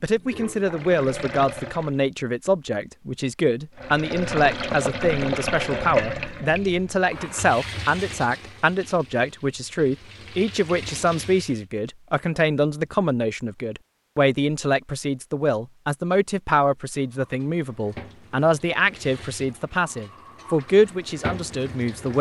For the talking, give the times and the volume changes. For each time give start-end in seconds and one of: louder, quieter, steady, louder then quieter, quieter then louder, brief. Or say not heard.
0.0-22.1 steady.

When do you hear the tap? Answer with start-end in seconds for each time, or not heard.
0.0-1.9, 3.8-11.7, 17.1-22.1.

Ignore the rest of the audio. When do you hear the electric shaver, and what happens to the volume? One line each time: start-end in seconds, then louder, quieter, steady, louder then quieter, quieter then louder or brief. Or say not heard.
not heard.